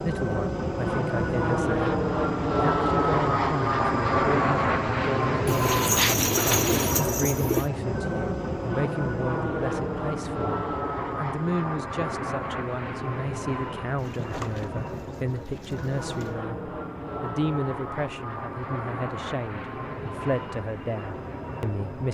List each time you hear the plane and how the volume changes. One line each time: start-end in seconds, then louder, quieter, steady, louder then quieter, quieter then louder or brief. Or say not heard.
0.0-22.1 quieter.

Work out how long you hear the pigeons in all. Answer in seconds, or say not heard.
5 s.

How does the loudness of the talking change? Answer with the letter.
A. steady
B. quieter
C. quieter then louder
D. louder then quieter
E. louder
A.